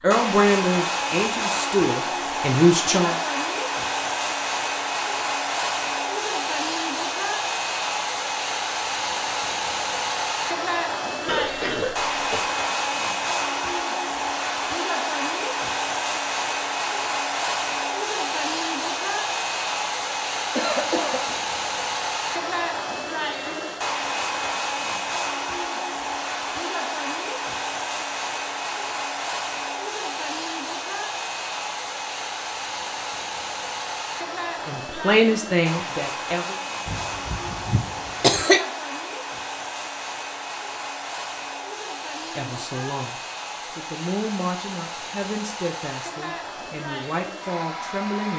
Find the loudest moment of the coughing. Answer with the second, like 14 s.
38 s.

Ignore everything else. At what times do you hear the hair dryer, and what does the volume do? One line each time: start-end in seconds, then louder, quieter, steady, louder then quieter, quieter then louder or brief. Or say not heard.
0.0-48.3 quieter.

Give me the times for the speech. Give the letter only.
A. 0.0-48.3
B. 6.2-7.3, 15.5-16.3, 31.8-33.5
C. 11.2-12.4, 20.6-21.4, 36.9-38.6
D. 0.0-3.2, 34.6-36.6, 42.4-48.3
D.